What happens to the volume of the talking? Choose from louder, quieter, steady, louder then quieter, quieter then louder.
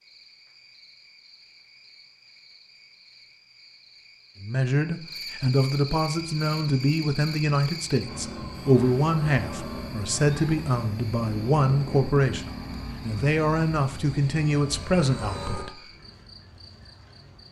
steady.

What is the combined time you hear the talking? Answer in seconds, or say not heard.
11 s.